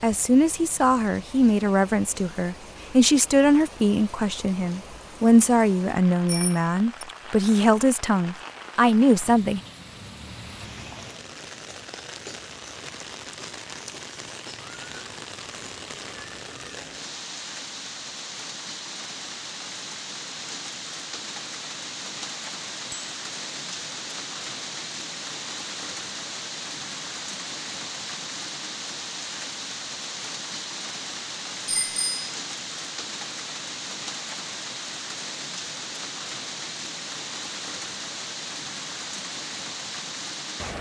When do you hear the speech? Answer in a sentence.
You can hear the speech from 0.0 to 9.6 s.